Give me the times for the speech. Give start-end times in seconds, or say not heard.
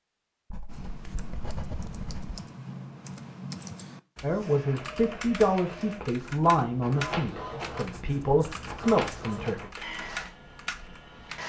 4.2-9.7.